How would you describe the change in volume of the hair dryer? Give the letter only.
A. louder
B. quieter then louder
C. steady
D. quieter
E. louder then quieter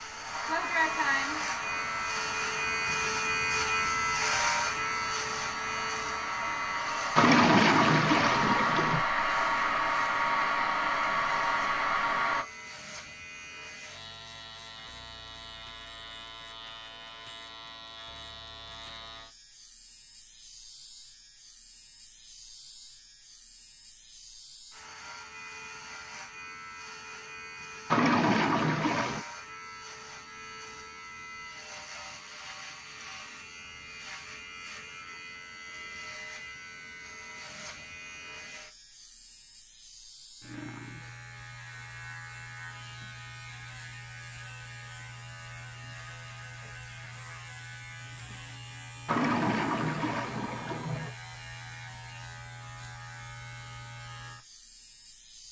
B.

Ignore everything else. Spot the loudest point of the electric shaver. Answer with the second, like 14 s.
4 s.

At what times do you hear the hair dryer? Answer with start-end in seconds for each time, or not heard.
0.0-12.4.